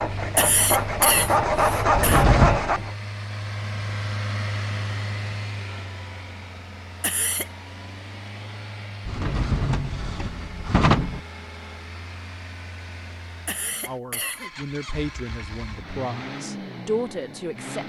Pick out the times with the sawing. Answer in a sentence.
The sawing can be heard from 0.0 to 3.0 s.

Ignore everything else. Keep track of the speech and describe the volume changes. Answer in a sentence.
The loudness of the speech goes down, then up.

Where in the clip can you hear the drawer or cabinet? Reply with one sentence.
The drawer or cabinet can be heard from 1.9 to 2.6 s and from 9.1 to 11.2 s.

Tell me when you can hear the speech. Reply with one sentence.
You can hear the speech from 13.8 to 17.8 s.